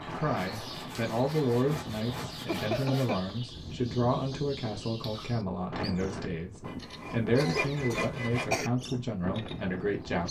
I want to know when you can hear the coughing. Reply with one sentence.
You can hear the coughing from 2.5 to 3.3 s and from 7.3 to 8.7 s.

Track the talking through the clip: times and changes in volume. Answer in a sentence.
You can hear the talking from 0.0 to 10.2 s, at a steady volume.